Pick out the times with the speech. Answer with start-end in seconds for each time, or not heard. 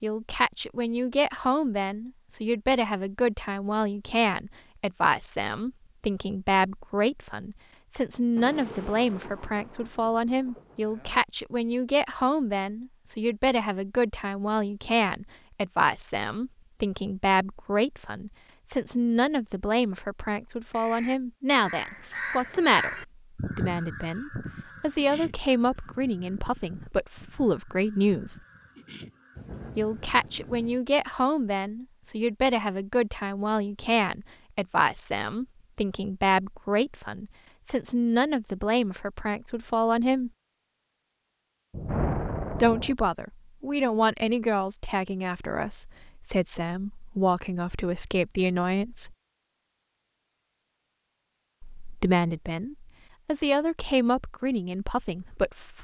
0.0-28.4, 29.8-40.3, 42.6-49.1, 51.6-55.7.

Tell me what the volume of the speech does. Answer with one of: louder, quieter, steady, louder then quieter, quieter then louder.
steady.